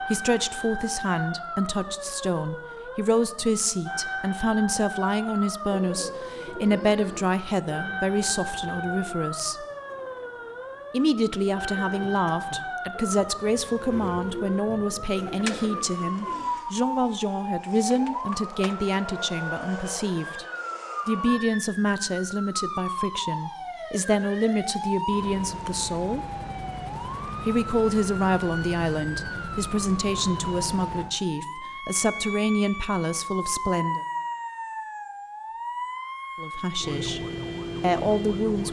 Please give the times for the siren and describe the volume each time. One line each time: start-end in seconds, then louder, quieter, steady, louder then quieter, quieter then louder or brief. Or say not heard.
0.0-38.6 steady.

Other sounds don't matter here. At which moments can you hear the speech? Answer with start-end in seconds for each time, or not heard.
0.0-9.7, 10.9-20.4, 21.1-26.2, 27.4-34.0, 36.4-37.2, 37.8-38.6.